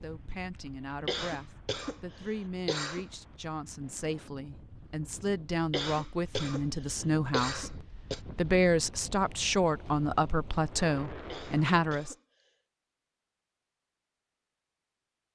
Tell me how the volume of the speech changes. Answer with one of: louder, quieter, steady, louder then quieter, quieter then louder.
louder.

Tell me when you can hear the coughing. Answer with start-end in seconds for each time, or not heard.
1.1-3.0, 5.7-8.2, 11.3-12.5.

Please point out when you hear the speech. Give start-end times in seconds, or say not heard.
0.0-12.2.